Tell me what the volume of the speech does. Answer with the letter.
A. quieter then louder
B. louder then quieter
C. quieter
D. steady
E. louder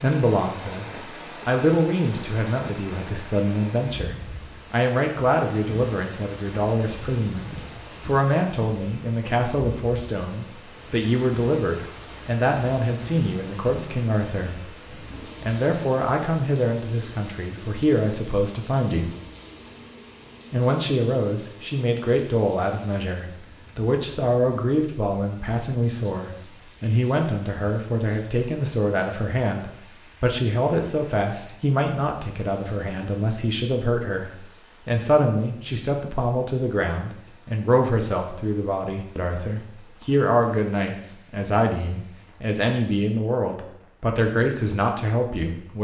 D.